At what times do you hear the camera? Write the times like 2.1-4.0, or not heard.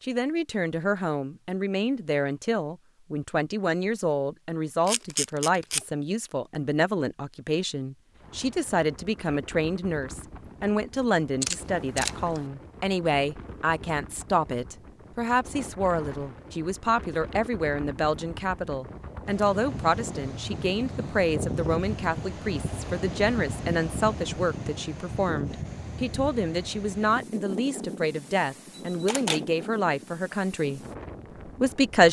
4.8-5.8, 11.4-12.4, 28.9-29.4.